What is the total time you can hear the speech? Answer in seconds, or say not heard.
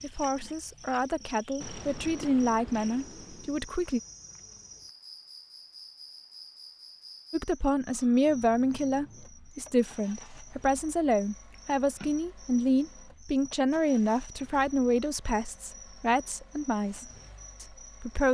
15 s.